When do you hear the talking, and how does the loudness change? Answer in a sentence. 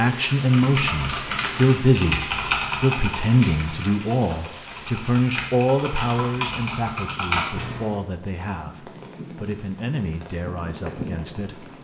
You can hear the talking from 0.0 to 11.7 s, getting quieter.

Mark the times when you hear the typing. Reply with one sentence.
You can hear the typing from 0.3 to 8.0 s.